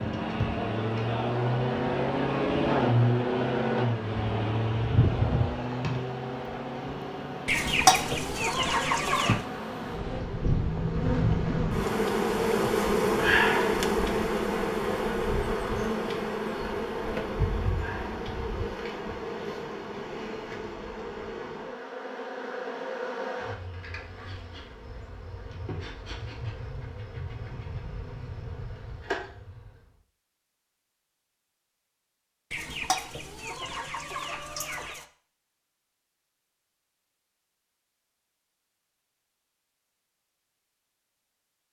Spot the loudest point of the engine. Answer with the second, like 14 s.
3 s.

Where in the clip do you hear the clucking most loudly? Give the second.
8 s.